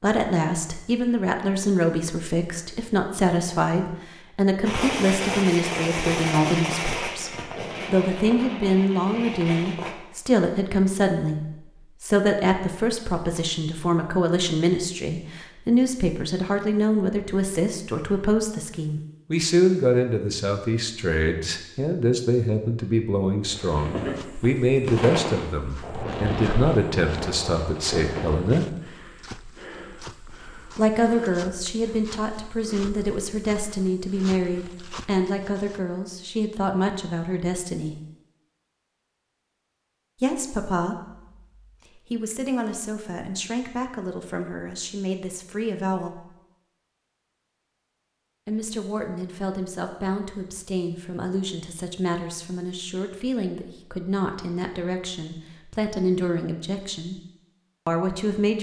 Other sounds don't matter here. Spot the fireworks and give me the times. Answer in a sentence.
You can hear the fireworks from 4.7 to 9.9 s and from 23.4 to 28.4 s.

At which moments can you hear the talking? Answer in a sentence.
You can hear the talking from 0.0 to 28.6 s, from 30.8 to 38.0 s, from 40.2 to 46.2 s, from 48.5 to 57.2 s and from 57.9 to 58.5 s.